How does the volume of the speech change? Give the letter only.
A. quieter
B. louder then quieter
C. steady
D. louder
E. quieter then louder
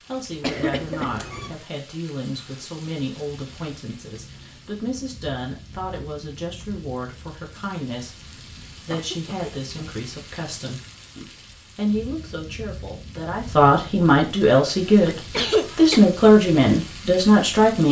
D.